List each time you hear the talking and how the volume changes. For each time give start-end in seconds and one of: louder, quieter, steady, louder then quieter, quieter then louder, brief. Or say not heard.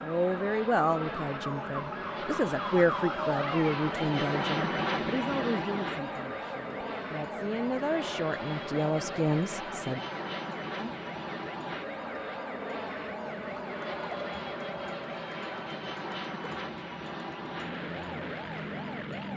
0.0-10.0 quieter then louder.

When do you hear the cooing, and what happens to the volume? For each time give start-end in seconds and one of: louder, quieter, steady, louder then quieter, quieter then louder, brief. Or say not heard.
not heard.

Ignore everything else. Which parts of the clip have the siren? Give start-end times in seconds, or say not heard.
0.0-19.3.